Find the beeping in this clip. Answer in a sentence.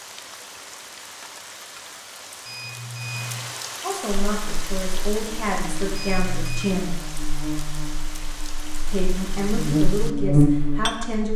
You can hear the beeping from 2.5 to 3.5 s and from 6.0 to 6.8 s.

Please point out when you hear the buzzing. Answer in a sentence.
You can hear the buzzing from 4.1 to 11.3 s.